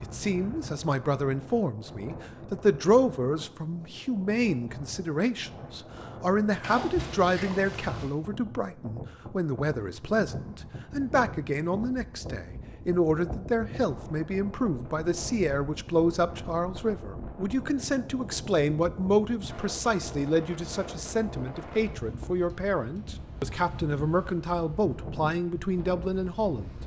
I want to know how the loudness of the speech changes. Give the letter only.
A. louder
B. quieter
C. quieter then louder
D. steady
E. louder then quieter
D.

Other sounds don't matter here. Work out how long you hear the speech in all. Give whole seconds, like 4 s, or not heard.
27 s.